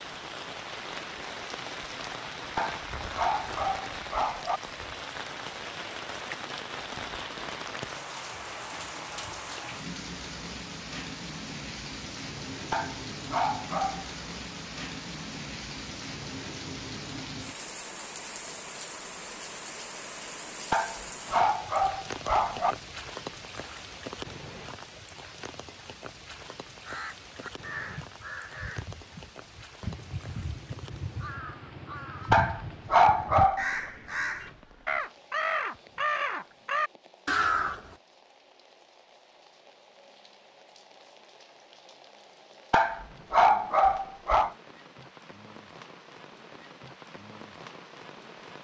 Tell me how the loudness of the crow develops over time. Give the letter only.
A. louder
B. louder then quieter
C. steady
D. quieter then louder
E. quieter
A.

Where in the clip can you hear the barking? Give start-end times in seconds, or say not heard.
2.5-4.6, 12.7-14.1, 20.7-22.8, 32.3-33.7, 42.7-44.5.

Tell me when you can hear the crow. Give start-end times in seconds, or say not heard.
26.4-38.0.